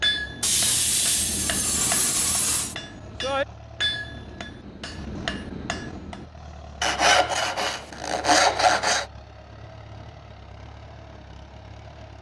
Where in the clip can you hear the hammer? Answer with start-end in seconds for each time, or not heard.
0.0-6.2.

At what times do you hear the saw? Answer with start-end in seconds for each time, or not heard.
0.4-2.8, 6.8-9.1.